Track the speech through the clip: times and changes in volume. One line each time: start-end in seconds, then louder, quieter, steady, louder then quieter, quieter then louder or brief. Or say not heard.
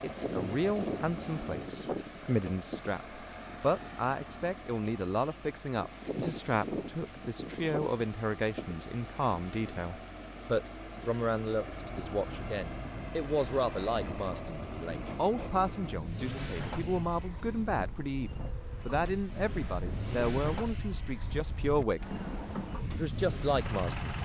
0.0-24.1 steady.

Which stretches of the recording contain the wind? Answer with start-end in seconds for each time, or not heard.
0.0-24.1.